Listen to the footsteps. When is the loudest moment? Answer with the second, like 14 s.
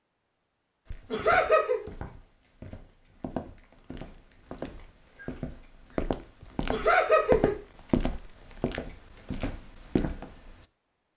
7 s.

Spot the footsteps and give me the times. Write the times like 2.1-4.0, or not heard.
0.8-10.6.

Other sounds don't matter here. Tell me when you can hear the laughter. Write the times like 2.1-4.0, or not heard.
1.1-1.9, 6.7-7.5.